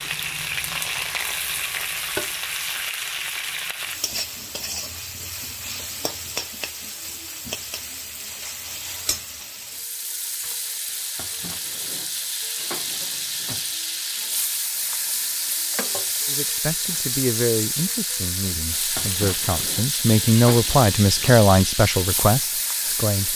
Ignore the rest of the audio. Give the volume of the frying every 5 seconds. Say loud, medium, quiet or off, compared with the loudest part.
loud, medium, loud, loud, loud.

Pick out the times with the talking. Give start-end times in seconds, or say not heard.
16.2-23.3.